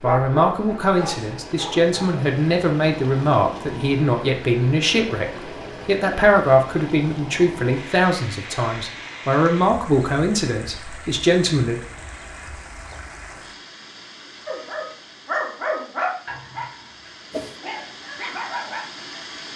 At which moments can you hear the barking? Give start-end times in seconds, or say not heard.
0.0-1.9, 14.4-19.2.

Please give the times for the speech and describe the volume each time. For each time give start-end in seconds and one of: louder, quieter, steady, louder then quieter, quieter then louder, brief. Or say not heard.
0.0-11.8 steady.